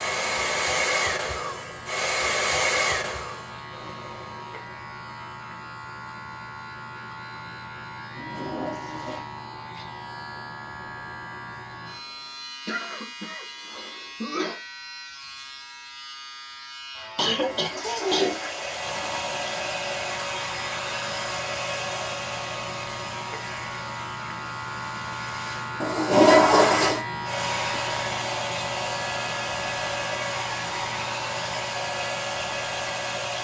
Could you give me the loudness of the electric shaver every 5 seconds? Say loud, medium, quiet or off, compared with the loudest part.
medium, medium, medium, medium, loud, loud, loud.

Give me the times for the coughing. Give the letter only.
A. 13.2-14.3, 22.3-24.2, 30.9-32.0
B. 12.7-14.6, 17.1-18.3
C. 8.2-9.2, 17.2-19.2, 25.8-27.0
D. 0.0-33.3
B.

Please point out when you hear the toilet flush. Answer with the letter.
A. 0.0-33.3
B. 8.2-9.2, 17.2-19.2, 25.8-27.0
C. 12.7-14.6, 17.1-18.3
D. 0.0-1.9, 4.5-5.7
B.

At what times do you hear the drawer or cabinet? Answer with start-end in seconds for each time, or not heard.
not heard.